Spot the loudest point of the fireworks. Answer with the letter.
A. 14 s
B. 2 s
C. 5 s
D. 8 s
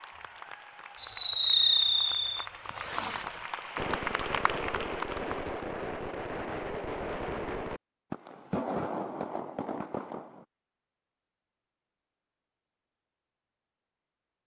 B.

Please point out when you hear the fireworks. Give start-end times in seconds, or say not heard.
0.9-10.4.